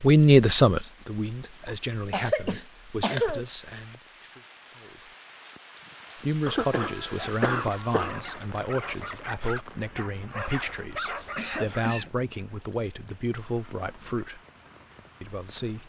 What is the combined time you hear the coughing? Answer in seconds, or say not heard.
4 s.